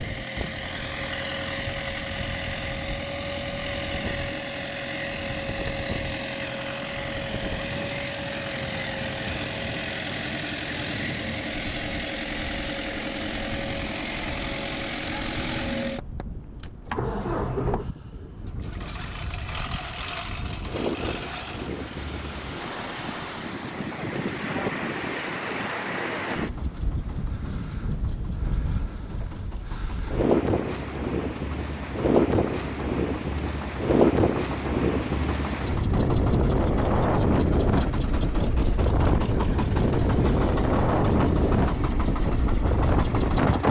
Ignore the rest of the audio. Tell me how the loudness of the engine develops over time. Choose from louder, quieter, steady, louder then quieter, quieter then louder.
quieter then louder.